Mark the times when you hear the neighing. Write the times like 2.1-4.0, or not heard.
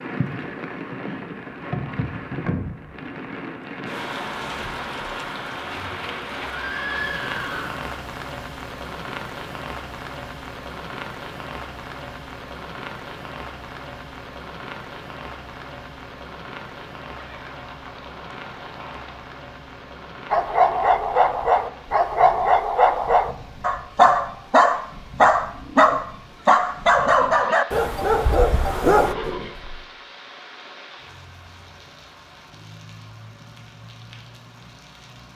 6.5-7.9, 17.1-19.2, 28.9-29.9.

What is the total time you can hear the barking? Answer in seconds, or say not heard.
9 s.